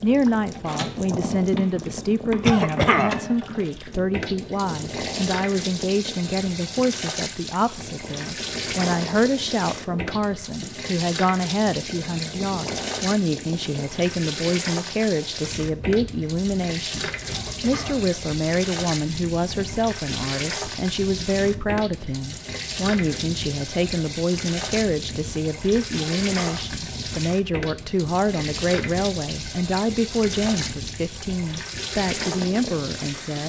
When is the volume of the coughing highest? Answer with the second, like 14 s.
3 s.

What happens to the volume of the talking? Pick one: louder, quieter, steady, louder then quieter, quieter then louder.
steady.